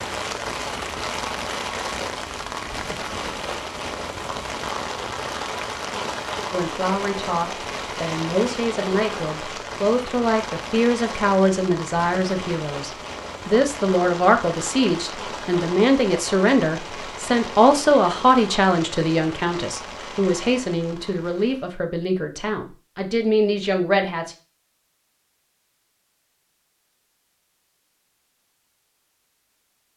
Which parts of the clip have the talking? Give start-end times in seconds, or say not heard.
6.5-24.4.